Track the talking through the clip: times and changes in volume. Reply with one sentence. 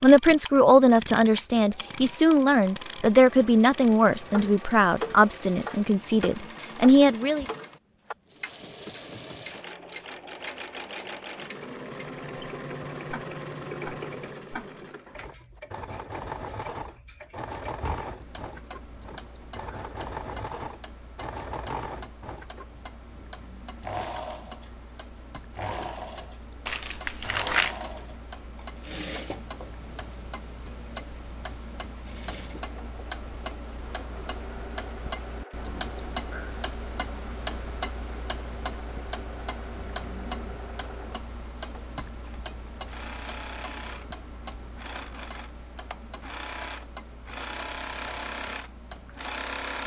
The talking can be heard from 0.0 to 7.5 s, at a steady volume.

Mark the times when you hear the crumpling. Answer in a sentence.
The crumpling can be heard from 26.6 to 27.9 s.